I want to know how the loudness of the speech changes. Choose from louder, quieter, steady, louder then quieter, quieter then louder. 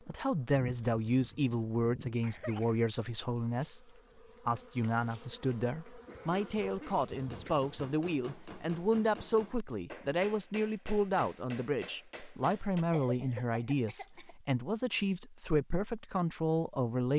steady.